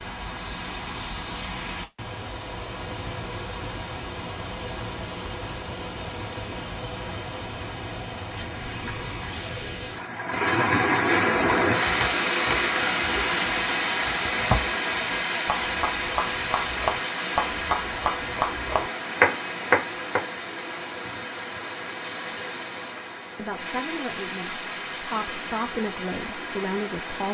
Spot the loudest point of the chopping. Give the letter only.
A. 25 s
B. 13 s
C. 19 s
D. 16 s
C.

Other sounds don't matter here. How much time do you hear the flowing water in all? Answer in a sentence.
The flowing water can be heard for 27 seconds in total.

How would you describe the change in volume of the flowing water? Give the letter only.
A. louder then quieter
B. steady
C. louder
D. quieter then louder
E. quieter
A.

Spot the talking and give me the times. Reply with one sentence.
You can hear the talking from 23.4 to 27.2 s.